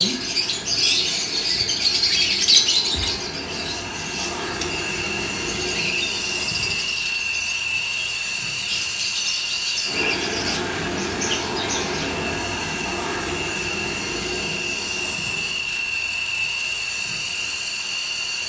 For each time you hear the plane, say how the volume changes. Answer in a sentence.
You can hear the plane from 0.0 to 18.4 s, getting louder.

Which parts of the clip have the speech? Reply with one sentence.
The speech can't be heard in this clip.